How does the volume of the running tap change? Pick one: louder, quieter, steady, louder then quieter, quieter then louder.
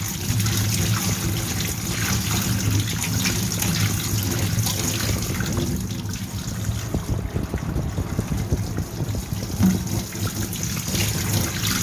quieter then louder.